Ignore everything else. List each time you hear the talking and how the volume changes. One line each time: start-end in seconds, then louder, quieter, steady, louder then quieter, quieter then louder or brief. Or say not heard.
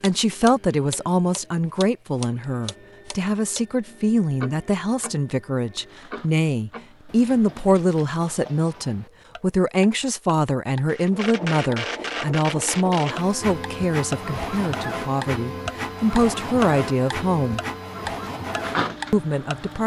0.0-17.6 steady
19.1-19.8 brief.